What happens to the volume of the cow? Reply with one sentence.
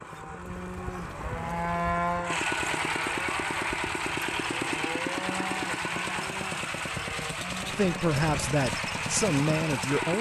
The loudness of the cow goes down.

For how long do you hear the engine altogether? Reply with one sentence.
The engine can be heard for 10 seconds in total.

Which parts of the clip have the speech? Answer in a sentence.
The speech can be heard from 7.7 to 10.1 s.